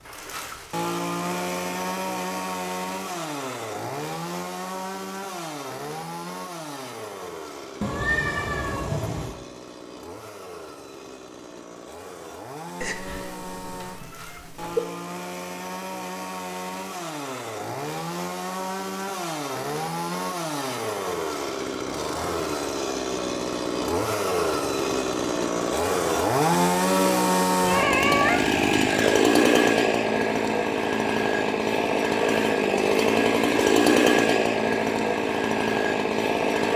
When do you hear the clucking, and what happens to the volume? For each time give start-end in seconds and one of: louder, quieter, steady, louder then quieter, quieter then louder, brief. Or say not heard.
not heard.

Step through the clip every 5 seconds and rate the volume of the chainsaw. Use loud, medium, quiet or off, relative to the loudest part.
medium, quiet, quiet, medium, medium, loud, loud, loud.